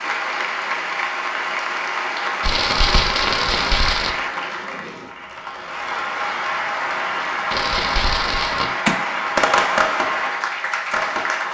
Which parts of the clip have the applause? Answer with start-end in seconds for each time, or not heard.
0.0-11.4.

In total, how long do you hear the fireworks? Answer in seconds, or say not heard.
6 s.